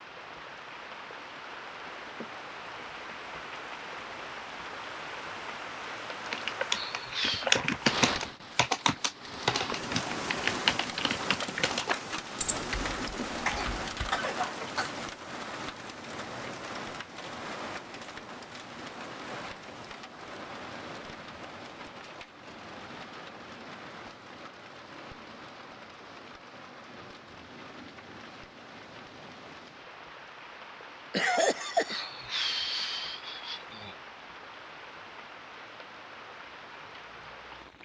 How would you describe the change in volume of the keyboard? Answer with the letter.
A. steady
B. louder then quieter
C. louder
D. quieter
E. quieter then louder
D.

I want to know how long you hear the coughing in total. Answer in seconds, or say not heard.
3 s.